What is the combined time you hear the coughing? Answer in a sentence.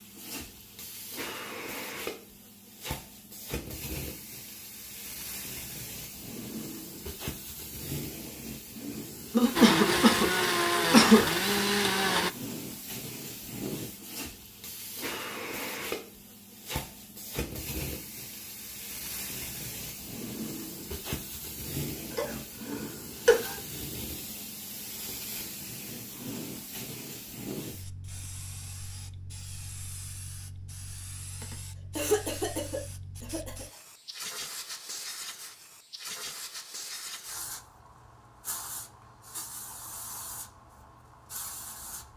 The coughing can be heard for 6 seconds in total.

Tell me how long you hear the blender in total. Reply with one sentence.
The blender can be heard for 3 seconds in total.